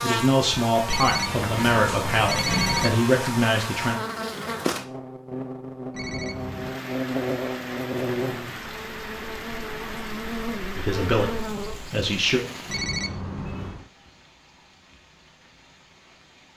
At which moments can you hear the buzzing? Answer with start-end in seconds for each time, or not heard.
0.0-11.9.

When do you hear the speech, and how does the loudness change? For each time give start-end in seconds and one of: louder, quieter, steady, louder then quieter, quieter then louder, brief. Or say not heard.
0.0-4.0 quieter then louder
10.8-12.4 brief.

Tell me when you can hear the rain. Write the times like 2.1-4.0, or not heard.
6.2-16.5.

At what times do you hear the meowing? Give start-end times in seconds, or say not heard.
not heard.